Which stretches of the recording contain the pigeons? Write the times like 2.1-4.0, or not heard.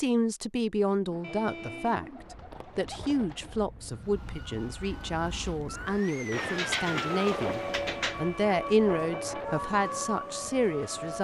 1.1-3.6, 6.3-8.2.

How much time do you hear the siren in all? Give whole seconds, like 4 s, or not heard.
7 s.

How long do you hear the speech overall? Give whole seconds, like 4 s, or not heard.
11 s.